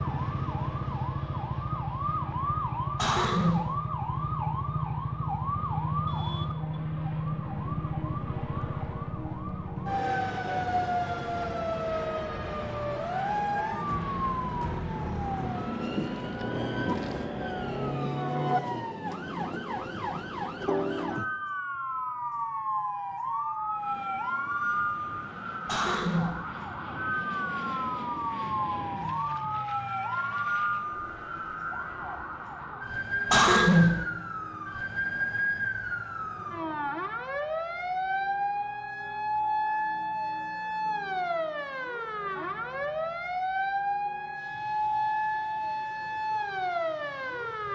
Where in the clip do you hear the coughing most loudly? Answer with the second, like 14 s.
34 s.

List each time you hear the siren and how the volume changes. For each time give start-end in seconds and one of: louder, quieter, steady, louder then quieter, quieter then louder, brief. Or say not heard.
0.0-47.7 steady.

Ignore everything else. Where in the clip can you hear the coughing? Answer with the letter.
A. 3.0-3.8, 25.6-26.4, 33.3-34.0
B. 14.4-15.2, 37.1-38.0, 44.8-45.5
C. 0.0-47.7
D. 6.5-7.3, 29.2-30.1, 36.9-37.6
A.